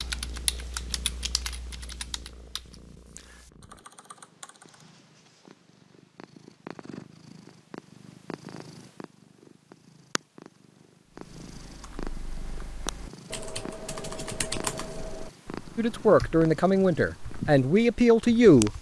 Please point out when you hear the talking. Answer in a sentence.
The talking can be heard from 15.8 to 18.7 s.